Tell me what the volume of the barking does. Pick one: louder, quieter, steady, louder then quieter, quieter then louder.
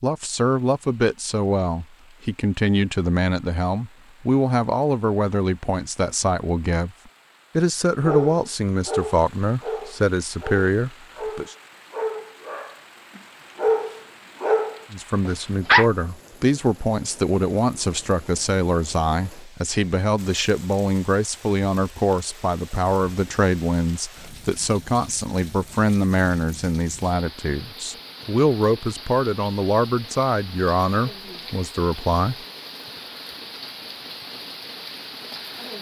quieter then louder.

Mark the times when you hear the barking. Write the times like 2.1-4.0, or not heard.
8.0-15.8.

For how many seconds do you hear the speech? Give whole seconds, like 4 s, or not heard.
28 s.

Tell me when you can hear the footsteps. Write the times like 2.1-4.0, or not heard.
not heard.